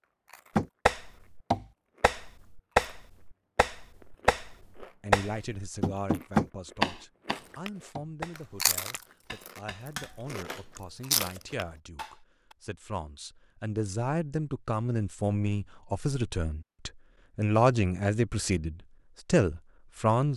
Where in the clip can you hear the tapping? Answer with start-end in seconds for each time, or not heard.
0.6-12.6.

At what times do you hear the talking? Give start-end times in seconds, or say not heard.
5.0-20.3.